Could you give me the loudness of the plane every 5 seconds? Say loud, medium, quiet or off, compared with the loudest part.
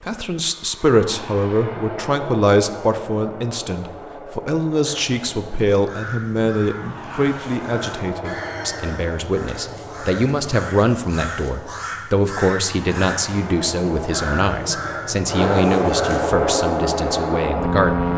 quiet, quiet, quiet, loud.